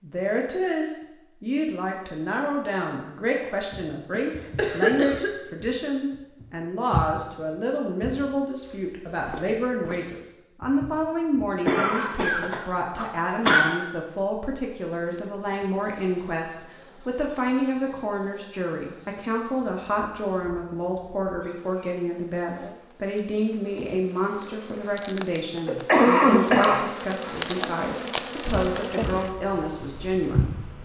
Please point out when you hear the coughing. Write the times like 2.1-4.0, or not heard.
4.1-5.3, 11.7-13.7, 25.6-27.3.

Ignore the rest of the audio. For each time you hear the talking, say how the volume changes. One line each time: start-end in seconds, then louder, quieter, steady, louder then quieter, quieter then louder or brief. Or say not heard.
0.0-30.6 steady.